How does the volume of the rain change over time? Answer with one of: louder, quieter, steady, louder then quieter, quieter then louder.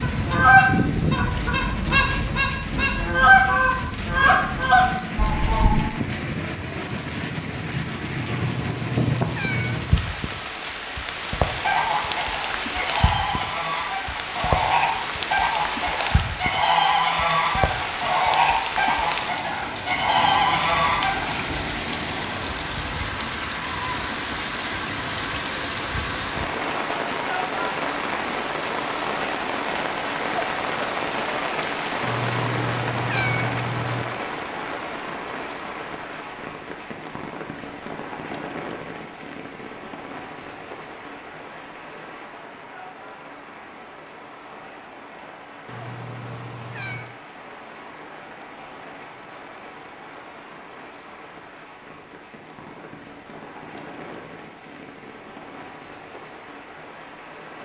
quieter.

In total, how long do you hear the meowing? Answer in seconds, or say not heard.
5 s.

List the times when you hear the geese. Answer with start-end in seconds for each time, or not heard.
0.0-5.8, 11.6-21.4.